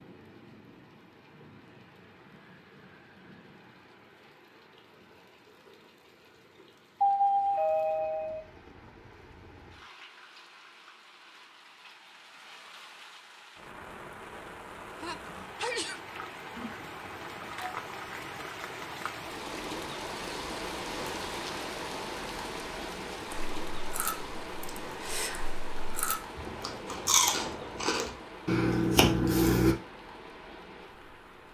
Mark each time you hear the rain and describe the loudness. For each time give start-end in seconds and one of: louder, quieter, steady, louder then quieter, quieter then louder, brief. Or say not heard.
0.0-31.4 louder then quieter.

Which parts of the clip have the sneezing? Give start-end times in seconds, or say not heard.
15.0-16.0.